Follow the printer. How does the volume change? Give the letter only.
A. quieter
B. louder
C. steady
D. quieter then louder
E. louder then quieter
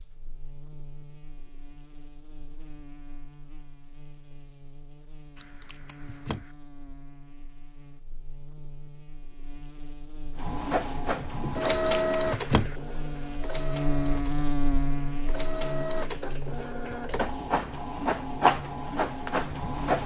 D.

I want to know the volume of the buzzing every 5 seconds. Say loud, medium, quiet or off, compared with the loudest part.
quiet, quiet, loud, medium.